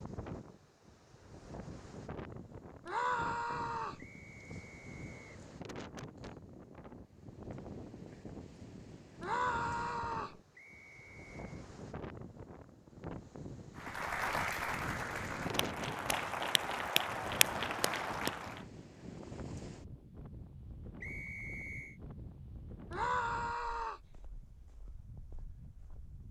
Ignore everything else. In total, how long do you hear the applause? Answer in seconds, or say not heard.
5 s.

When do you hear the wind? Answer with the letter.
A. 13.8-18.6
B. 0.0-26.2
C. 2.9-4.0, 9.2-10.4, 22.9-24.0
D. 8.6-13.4
B.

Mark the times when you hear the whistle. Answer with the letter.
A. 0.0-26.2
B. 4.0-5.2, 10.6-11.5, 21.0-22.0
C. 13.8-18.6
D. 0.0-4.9
B.